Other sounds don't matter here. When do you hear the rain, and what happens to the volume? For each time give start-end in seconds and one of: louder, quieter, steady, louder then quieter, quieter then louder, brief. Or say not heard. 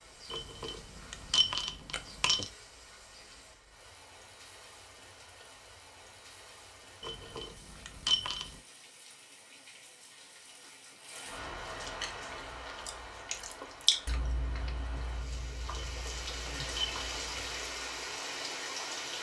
0.0-19.1 louder.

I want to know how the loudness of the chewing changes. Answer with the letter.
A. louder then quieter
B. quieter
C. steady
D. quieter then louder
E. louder
A.